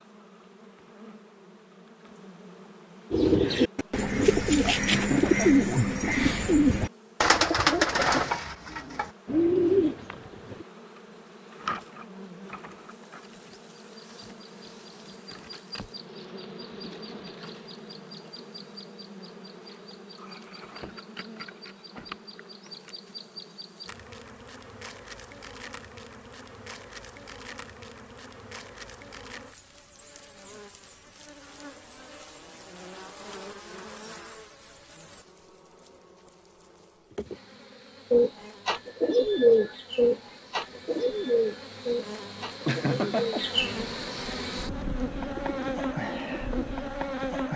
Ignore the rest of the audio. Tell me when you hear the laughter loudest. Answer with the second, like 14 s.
43 s.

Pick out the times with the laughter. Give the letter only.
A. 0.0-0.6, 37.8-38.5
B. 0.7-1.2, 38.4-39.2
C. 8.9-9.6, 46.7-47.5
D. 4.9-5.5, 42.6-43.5
D.